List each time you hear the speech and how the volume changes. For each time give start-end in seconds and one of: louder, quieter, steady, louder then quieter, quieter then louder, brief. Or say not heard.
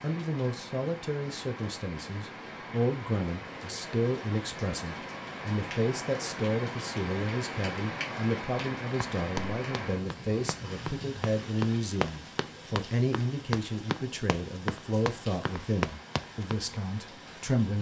0.0-17.7 steady.